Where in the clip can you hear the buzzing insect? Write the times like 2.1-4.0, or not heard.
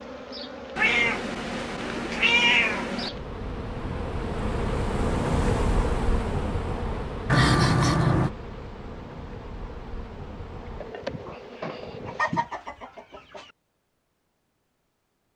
0.0-12.2.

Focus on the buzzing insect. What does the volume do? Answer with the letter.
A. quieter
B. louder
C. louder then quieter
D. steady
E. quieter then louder
C.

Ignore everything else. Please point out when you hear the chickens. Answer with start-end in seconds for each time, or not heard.
12.1-13.5.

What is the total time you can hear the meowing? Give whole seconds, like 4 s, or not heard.
5 s.